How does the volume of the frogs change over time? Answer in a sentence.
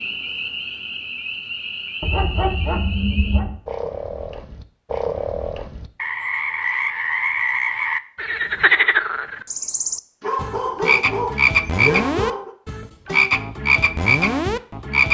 The volume of the frogs goes up.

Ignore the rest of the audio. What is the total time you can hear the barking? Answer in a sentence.
The barking can be heard for 4 seconds in total.